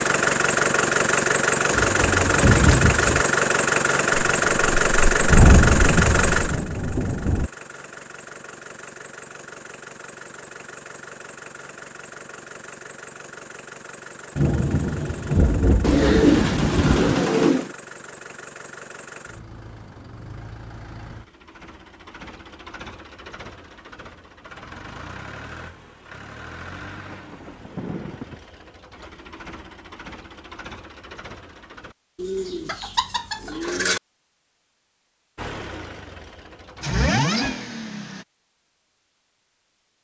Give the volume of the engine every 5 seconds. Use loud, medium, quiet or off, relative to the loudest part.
loud, medium, quiet, quiet, quiet, quiet, quiet, medium.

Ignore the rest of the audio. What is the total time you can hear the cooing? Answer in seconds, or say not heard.
5 s.